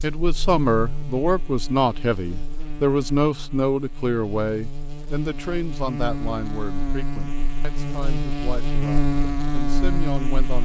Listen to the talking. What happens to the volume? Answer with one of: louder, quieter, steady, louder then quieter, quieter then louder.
quieter.